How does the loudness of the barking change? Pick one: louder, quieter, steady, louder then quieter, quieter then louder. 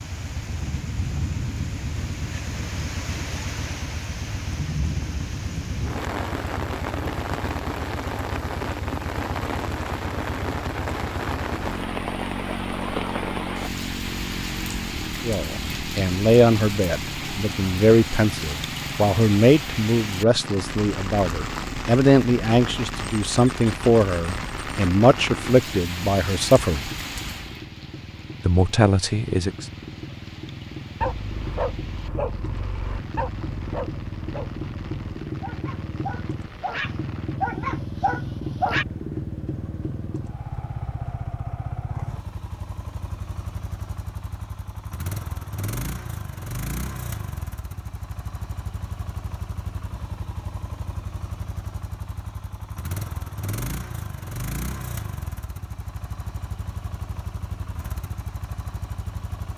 quieter then louder.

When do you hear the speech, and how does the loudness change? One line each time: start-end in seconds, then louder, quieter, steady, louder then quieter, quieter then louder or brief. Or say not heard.
15.2-26.9 steady
28.4-29.6 brief.